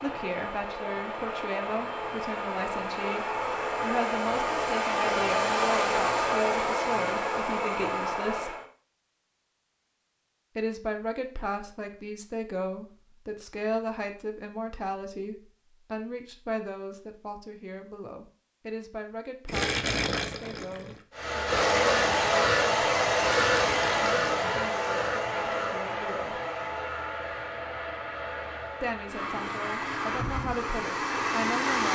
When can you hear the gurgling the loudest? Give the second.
20 s.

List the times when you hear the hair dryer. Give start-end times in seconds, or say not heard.
0.0-8.7, 21.1-31.9.